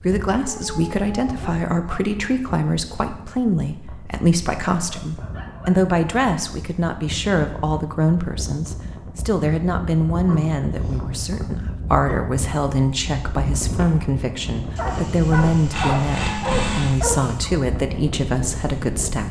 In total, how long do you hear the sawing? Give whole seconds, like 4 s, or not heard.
2 s.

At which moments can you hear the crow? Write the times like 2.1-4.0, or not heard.
not heard.